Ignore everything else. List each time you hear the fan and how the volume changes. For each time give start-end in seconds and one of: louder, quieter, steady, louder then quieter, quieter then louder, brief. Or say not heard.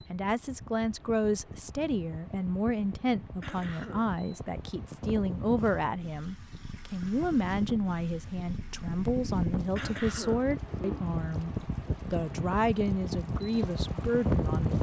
0.0-14.7 louder.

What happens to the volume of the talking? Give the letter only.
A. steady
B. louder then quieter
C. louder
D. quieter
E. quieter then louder
A.